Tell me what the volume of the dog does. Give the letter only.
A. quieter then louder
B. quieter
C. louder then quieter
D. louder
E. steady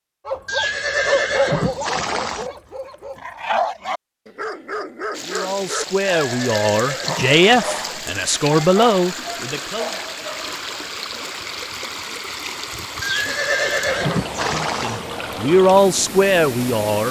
B.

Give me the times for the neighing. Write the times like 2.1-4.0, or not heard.
0.5-2.5, 6.2-8.1, 13.0-15.0.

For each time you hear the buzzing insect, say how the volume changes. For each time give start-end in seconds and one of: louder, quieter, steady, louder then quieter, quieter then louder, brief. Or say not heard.
not heard.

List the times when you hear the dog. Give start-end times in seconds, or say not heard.
0.2-10.6.